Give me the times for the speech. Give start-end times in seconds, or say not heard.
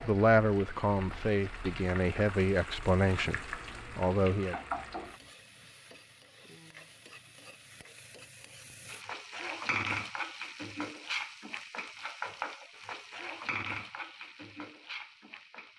0.0-4.5.